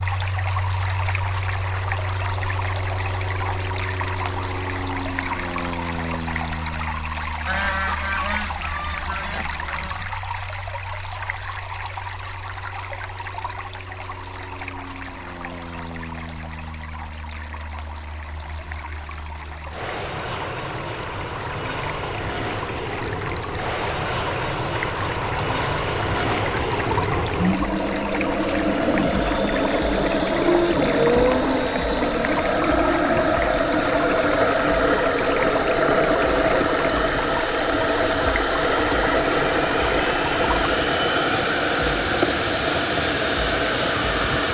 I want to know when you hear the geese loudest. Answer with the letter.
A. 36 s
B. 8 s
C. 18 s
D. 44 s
B.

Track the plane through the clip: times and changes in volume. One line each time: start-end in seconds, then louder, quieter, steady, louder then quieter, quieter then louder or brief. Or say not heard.
0.0-44.4 quieter then louder.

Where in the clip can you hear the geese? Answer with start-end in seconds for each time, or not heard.
7.5-10.1.